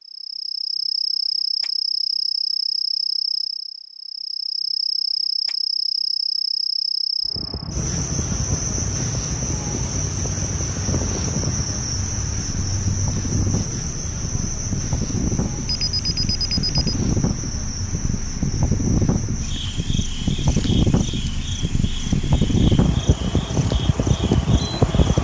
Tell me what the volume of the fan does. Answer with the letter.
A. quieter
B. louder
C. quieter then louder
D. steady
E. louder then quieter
B.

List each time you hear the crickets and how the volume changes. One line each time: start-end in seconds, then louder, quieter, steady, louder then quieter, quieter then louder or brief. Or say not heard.
0.0-25.2 quieter.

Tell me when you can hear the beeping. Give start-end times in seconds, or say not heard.
15.7-16.9.